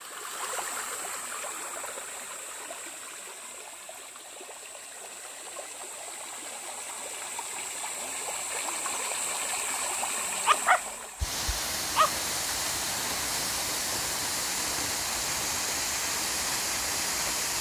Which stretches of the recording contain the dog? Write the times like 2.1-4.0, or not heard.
10.4-12.1.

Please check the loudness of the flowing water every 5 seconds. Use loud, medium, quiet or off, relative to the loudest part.
medium, medium, loud, loud.